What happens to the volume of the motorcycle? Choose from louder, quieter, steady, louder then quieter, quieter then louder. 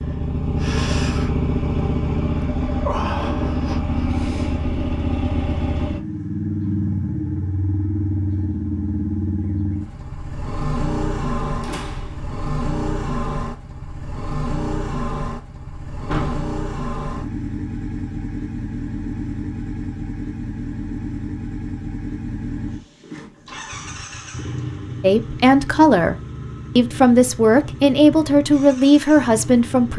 quieter.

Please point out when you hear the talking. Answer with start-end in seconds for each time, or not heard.
25.0-26.1, 26.8-29.9.